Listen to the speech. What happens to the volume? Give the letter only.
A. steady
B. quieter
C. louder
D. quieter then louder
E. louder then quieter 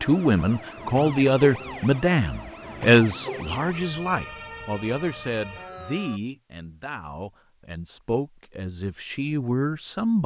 D.